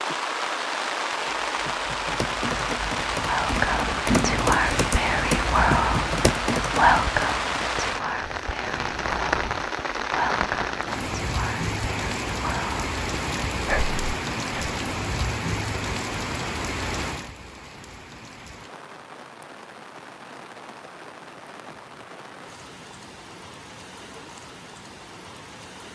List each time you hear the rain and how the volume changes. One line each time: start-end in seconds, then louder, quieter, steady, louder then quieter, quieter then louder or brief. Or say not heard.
0.0-25.8 quieter.